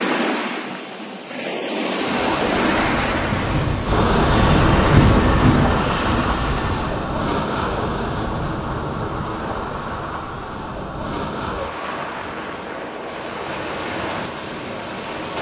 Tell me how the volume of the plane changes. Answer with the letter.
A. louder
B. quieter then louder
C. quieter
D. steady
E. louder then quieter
E.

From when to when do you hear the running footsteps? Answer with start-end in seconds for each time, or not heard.
not heard.